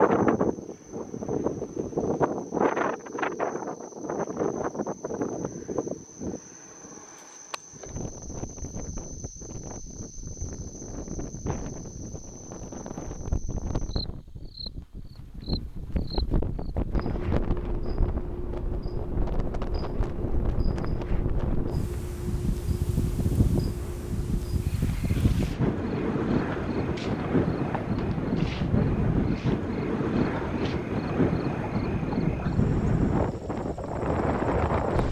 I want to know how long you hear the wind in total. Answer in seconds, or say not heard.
35 s.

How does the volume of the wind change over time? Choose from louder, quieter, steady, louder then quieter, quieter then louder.
quieter then louder.